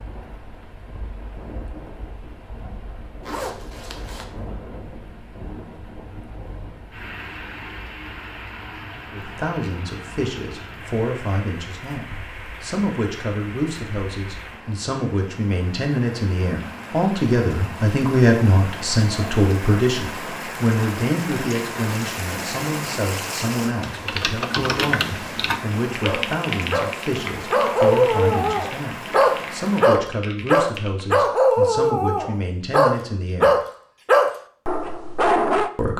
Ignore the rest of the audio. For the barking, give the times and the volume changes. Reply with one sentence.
The barking can be heard from 26.0 to 35.7 s, at a steady volume.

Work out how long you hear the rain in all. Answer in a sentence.
The rain can be heard for 30 seconds in total.